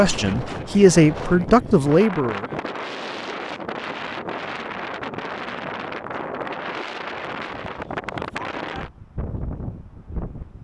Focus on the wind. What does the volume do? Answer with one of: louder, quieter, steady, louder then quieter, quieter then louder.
steady.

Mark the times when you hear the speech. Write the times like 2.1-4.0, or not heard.
0.0-2.5.